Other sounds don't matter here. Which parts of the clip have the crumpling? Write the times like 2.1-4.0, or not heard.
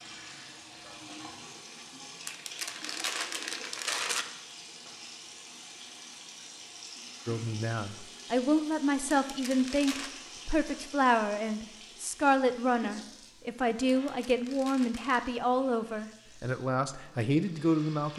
2.2-4.2, 9.2-10.1, 14.0-15.3.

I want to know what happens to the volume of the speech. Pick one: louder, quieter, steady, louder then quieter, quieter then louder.
steady.